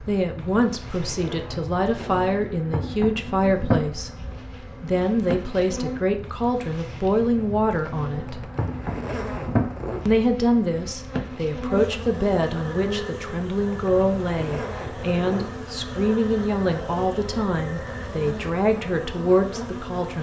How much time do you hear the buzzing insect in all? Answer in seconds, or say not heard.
20 s.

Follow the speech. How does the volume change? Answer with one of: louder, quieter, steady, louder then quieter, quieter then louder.
steady.